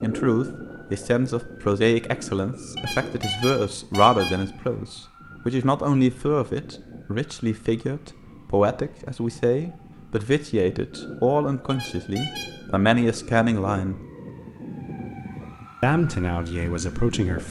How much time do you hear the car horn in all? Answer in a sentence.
The car horn can be heard for 3 seconds in total.